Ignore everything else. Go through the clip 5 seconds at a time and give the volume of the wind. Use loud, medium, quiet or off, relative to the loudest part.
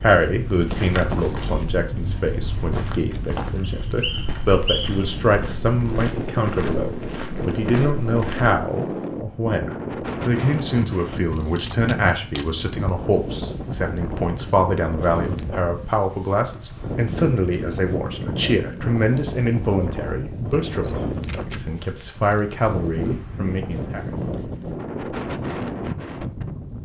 medium, loud, loud, loud, loud, loud.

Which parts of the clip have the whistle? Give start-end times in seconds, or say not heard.
3.8-5.1.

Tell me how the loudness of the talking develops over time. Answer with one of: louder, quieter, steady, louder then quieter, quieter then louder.
steady.